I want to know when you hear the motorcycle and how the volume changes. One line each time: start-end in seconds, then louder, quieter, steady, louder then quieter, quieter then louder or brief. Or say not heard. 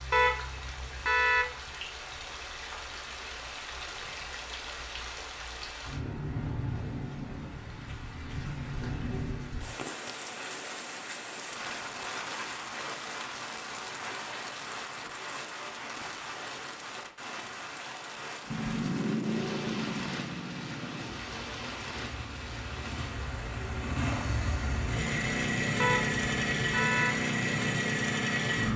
18.4-28.7 quieter then louder.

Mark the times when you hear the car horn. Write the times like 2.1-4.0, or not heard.
0.1-1.5, 25.8-27.2.